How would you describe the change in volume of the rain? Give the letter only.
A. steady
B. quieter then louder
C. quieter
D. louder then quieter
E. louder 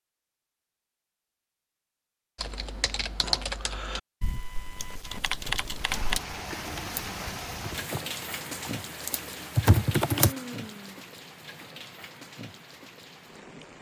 C.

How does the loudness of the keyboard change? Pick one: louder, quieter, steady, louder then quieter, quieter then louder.
quieter then louder.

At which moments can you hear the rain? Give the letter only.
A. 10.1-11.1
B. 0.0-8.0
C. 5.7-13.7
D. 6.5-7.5
C.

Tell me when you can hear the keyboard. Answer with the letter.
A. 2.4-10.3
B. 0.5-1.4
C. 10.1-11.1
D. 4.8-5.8
A.